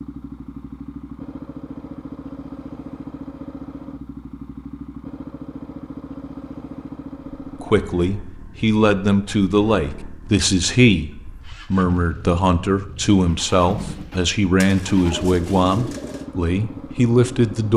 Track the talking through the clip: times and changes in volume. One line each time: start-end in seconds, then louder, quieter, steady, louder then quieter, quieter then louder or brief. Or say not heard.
7.6-17.7 steady.